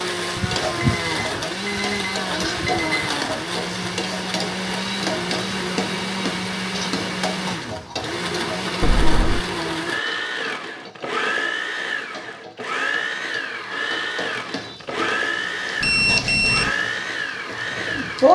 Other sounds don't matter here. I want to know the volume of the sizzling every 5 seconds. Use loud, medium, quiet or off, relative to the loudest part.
medium, medium, quiet, loud.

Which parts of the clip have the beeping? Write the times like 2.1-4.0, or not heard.
0.3-3.1, 8.8-9.4, 15.8-16.7.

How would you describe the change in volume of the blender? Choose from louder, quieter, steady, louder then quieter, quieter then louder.
steady.